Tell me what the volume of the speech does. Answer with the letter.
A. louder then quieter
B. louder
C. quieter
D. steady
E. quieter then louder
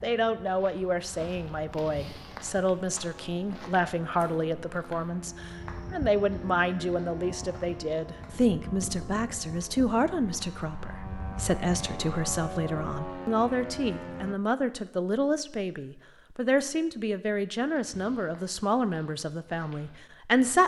D.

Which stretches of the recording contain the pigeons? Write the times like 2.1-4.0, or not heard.
not heard.